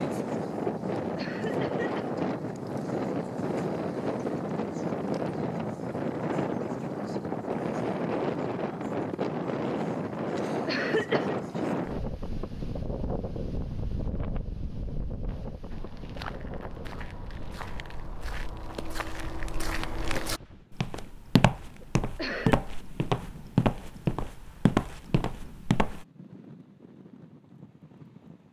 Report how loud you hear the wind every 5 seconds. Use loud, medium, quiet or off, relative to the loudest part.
loud, loud, loud, quiet, quiet, quiet.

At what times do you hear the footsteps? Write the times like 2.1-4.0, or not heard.
15.7-26.1.